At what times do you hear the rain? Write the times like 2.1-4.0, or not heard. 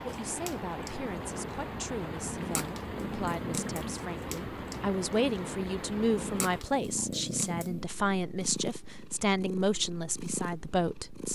0.0-6.7.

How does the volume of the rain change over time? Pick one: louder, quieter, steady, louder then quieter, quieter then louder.
steady.